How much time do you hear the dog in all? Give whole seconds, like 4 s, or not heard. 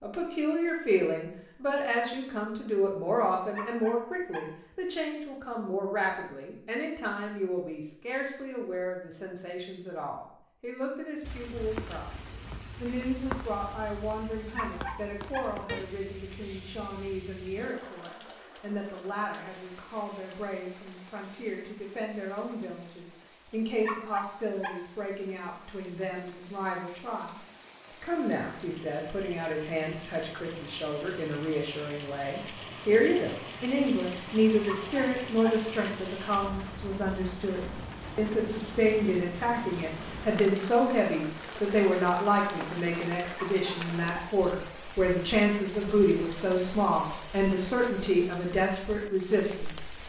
5 s.